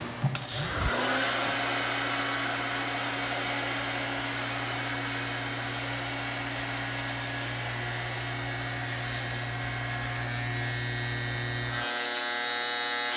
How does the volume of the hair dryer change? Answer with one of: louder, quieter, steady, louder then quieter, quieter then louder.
quieter.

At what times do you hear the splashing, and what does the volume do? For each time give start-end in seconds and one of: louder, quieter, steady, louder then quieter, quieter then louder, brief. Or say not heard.
not heard.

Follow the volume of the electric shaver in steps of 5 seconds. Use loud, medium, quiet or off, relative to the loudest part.
medium, medium, loud.